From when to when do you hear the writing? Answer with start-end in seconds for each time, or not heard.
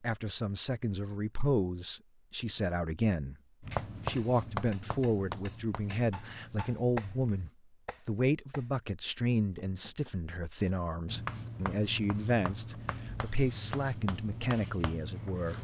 3.6-7.5, 11.1-15.5.